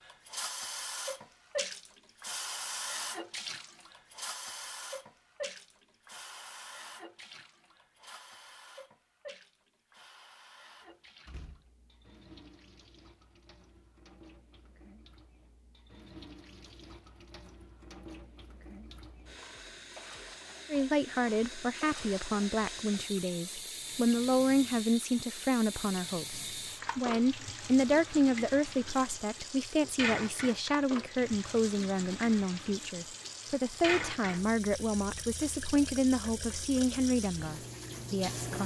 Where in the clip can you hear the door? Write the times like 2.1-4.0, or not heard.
10.8-11.7.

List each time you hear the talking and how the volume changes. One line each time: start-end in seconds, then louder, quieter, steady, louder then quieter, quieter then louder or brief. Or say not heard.
20.7-38.6 steady.